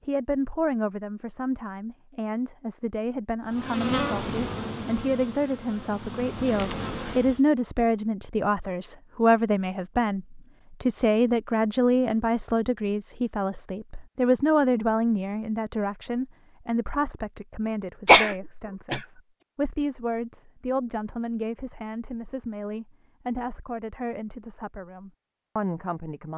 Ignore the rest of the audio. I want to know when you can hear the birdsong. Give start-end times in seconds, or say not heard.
not heard.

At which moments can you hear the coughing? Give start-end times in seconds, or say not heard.
18.1-19.0.